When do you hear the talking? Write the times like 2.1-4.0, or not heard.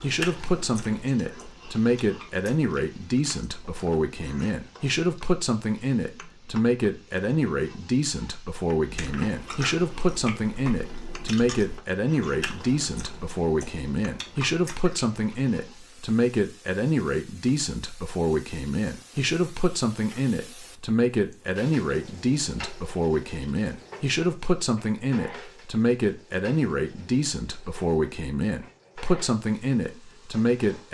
0.0-30.9.